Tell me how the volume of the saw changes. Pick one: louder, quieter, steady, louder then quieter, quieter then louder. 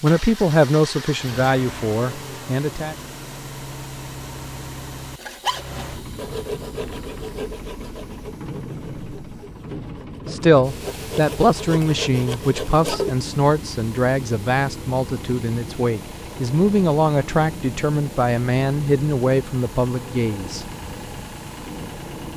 quieter then louder.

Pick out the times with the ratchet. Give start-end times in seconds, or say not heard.
not heard.